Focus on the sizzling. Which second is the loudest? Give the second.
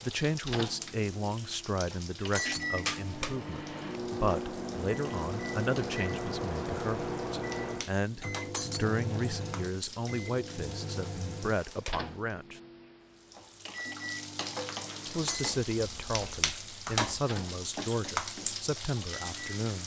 17 s.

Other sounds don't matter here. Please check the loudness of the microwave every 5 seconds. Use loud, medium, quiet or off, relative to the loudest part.
loud, loud, medium, medium.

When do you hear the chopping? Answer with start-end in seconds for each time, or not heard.
not heard.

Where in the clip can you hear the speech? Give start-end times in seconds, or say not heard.
0.0-12.6, 15.1-19.8.